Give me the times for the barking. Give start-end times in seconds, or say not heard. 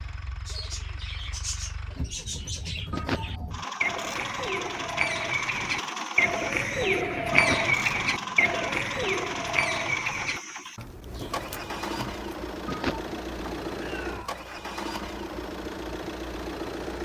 not heard.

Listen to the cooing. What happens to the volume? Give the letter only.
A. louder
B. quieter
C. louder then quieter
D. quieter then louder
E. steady
C.